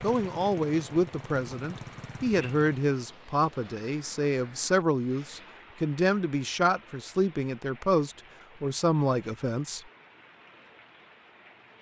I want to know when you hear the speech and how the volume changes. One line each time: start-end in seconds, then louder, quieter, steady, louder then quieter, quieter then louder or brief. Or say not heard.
0.0-9.8 steady.